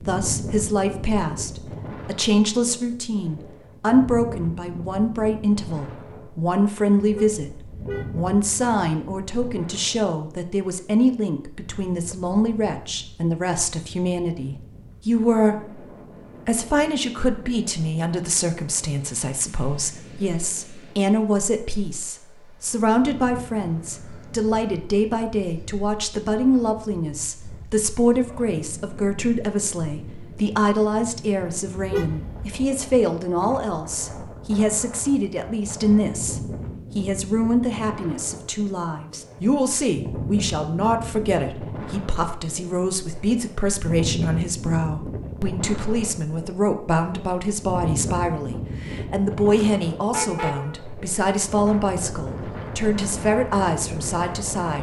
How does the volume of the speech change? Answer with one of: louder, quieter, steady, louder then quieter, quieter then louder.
steady.